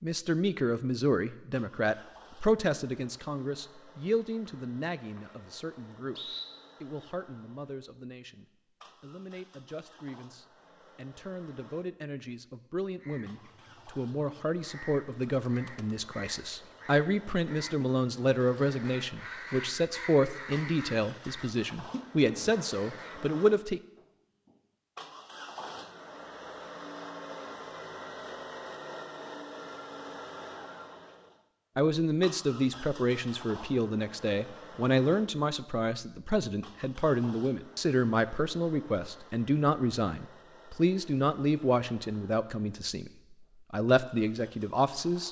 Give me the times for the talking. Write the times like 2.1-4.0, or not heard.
0.0-23.8, 31.8-45.2.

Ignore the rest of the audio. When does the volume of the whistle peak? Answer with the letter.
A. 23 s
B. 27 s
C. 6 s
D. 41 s
C.